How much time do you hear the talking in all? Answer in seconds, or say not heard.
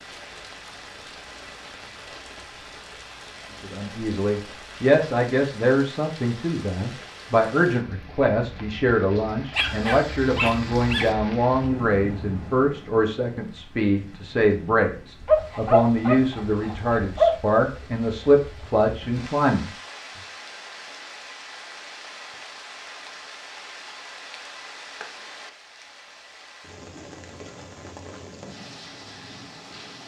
16 s.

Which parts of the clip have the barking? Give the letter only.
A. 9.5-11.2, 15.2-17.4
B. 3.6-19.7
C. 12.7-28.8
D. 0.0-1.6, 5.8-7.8
A.